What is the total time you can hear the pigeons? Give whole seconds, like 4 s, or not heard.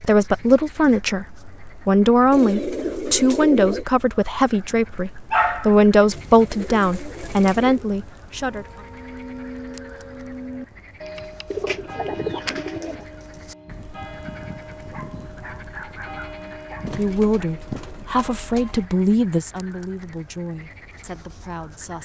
7 s.